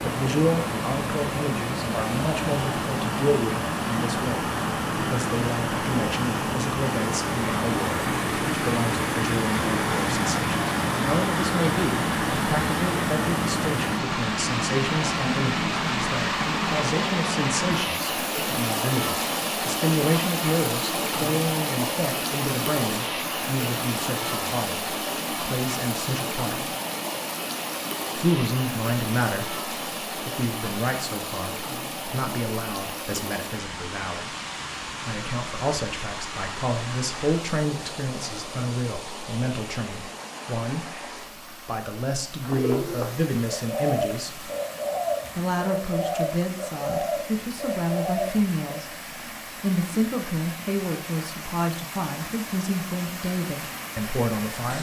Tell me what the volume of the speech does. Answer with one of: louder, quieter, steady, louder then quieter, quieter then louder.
steady.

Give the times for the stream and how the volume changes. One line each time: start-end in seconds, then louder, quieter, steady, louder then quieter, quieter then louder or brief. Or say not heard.
0.0-54.7 quieter.